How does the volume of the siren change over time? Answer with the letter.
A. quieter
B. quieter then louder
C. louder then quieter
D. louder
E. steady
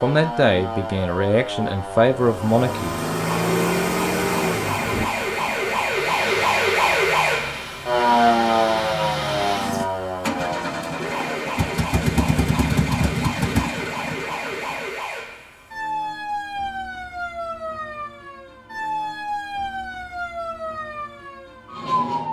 C.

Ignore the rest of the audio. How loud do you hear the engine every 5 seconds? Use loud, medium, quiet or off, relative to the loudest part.
loud, medium, loud, off, off.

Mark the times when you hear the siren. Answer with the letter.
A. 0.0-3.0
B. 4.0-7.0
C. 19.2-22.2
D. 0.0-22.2
D.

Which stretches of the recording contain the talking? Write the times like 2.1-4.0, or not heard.
0.0-3.0.